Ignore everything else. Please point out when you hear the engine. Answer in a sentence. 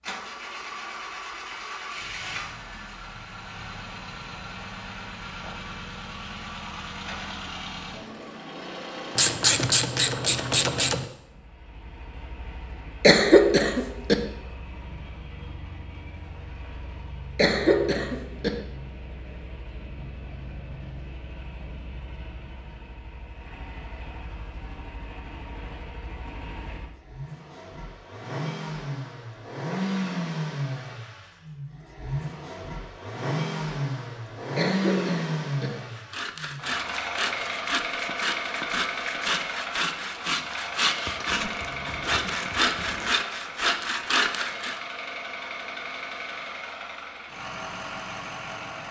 The engine can be heard from 0.0 to 48.8 s.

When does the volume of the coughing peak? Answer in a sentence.
The volume of the coughing peaks at 13 seconds.